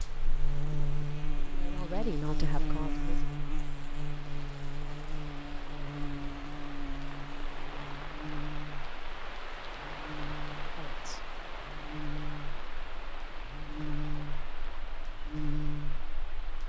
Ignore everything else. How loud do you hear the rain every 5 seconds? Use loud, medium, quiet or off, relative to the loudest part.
medium, loud, loud, medium.